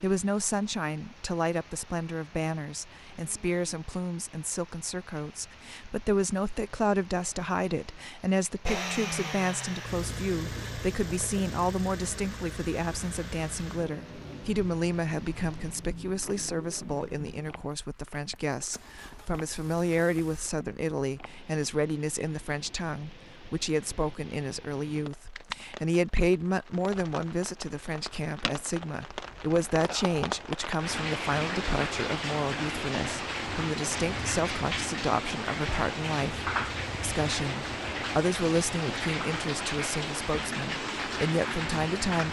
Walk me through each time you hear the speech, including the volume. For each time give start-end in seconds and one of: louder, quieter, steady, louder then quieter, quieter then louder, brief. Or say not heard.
0.0-42.2 steady.